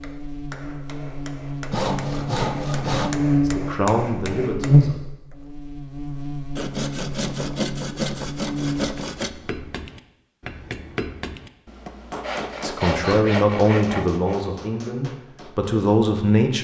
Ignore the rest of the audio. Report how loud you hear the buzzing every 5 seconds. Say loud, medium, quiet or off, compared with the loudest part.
loud, medium, off, off.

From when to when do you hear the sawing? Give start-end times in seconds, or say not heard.
1.7-3.2, 6.5-9.3, 12.2-14.5.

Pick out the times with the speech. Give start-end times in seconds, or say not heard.
3.4-5.0, 12.6-16.5.